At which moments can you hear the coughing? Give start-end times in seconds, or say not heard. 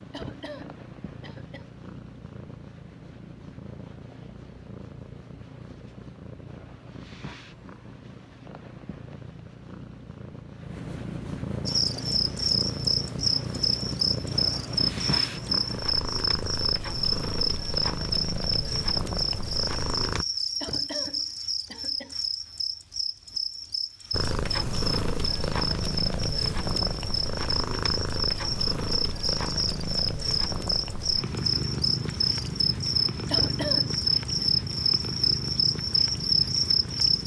0.1-1.7, 20.6-22.1, 33.3-34.5.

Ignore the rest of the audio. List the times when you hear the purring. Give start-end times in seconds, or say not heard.
0.0-20.2, 24.1-37.2.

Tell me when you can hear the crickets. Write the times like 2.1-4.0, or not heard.
11.7-37.2.